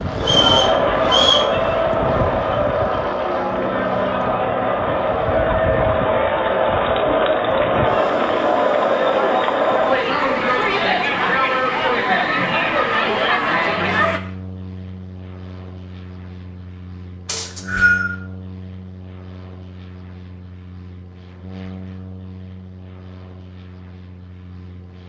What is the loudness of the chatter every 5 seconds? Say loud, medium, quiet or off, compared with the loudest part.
loud, loud, loud, off, off.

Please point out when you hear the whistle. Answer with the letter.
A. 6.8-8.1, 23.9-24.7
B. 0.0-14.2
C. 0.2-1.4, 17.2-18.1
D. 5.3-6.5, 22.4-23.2
C.